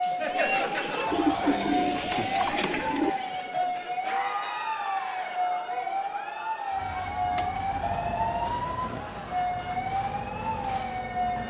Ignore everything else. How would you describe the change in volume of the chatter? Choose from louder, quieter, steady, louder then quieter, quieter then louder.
quieter.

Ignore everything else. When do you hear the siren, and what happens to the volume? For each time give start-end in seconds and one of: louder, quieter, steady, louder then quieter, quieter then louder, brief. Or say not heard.
0.0-11.4 steady.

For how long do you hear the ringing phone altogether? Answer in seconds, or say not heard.
2 s.